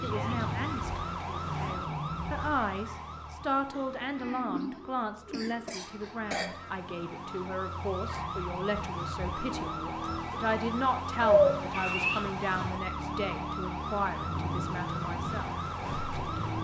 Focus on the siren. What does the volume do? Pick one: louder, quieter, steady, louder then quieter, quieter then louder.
quieter then louder.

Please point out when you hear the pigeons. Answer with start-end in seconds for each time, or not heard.
3.7-5.7, 11.2-12.8.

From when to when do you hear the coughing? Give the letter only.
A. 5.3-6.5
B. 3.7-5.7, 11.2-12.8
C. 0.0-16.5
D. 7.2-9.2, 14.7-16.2
A.